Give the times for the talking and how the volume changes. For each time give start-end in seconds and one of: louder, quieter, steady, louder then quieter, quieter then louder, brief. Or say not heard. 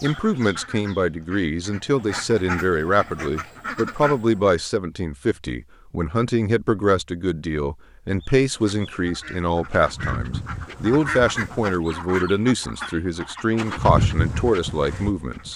0.0-15.5 steady.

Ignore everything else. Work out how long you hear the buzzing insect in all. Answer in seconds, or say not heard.
5 s.